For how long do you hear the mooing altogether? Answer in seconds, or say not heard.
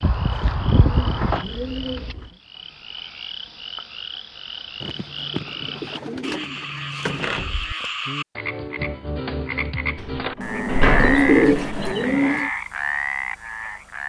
not heard.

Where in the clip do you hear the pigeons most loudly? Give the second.
11 s.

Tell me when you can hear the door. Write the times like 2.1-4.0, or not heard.
0.0-1.4, 7.0-7.8, 9.9-11.9.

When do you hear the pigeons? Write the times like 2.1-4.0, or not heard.
0.8-2.4, 4.8-7.3, 10.9-12.5.